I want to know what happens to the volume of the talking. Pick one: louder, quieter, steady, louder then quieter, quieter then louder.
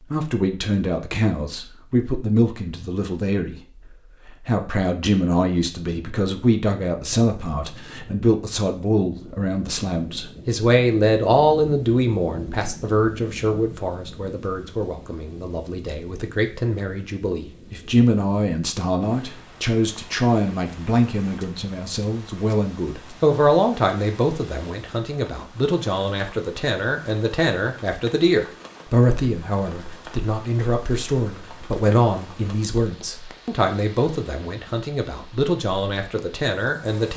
steady.